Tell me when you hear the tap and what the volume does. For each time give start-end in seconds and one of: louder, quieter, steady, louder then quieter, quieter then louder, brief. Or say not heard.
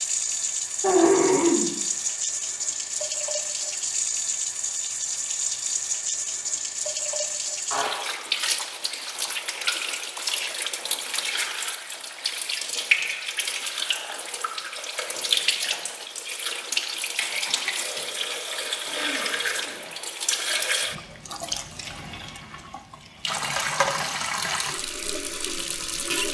0.0-26.2 steady.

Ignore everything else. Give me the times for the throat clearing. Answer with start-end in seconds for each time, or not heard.
0.8-1.7, 17.4-18.2, 18.9-19.8.